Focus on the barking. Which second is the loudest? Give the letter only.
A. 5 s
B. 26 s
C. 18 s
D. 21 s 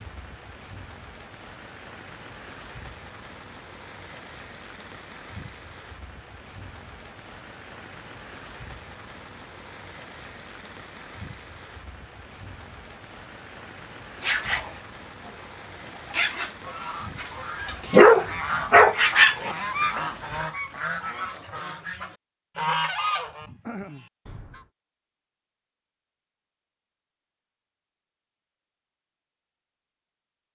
C.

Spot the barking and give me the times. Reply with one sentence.
You can hear the barking from 14.2 to 20.0 s.